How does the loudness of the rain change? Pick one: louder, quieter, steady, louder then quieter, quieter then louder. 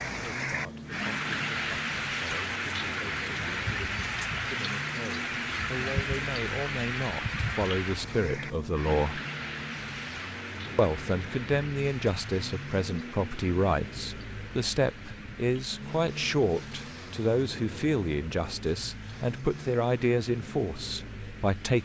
quieter.